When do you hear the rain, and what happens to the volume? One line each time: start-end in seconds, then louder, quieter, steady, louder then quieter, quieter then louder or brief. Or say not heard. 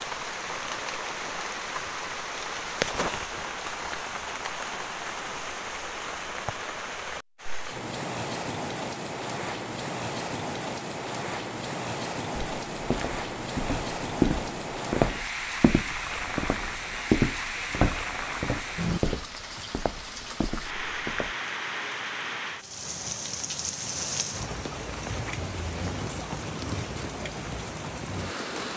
0.0-28.7 steady.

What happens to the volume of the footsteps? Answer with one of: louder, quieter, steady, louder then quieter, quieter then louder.
quieter.